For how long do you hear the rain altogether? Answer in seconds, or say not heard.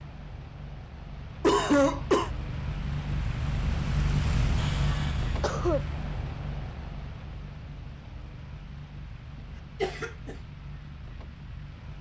12 s.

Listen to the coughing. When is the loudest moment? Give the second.
2 s.